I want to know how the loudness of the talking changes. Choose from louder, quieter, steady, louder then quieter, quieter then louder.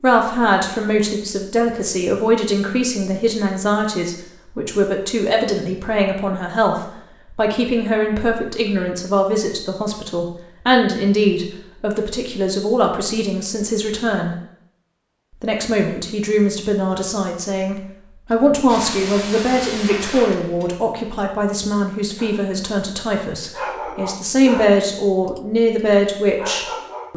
steady.